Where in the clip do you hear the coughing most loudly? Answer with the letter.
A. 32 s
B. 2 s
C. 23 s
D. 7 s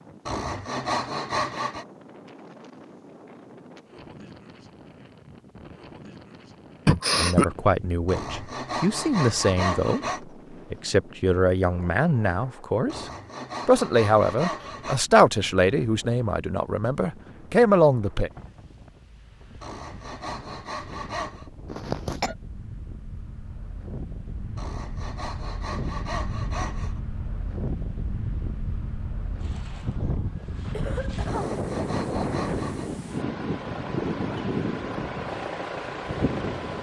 D.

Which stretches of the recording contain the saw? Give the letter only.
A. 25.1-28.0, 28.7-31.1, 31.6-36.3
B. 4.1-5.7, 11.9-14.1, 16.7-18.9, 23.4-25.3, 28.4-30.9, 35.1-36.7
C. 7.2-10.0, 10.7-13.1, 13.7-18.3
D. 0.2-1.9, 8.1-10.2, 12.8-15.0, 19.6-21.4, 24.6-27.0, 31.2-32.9
D.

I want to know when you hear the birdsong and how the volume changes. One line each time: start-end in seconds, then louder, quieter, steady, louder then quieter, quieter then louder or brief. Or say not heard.
not heard.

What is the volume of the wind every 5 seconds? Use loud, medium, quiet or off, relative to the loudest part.
quiet, quiet, quiet, quiet, quiet, medium, loud, loud.